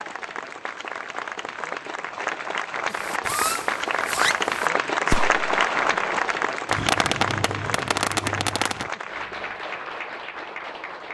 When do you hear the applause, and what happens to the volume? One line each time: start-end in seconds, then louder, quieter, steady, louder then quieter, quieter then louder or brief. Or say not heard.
0.0-11.1 louder then quieter.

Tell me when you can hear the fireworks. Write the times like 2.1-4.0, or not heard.
2.9-8.9.